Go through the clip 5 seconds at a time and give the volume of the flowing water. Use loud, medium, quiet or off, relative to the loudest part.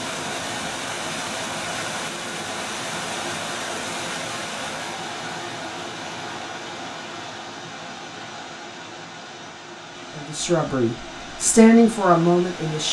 loud, medium, medium.